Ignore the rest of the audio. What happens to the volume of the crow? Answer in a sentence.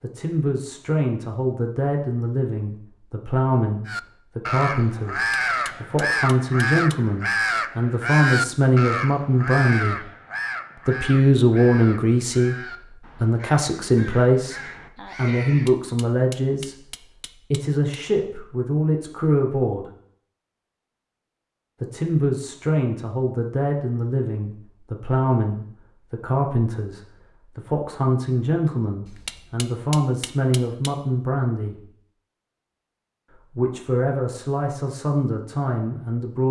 The loudness of the crow goes down.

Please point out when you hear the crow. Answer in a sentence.
You can hear the crow from 3.9 to 15.8 s.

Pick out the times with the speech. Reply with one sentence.
The speech can be heard from 0.0 to 10.1 s, from 10.8 to 19.9 s, from 21.8 to 31.9 s and from 33.3 to 36.4 s.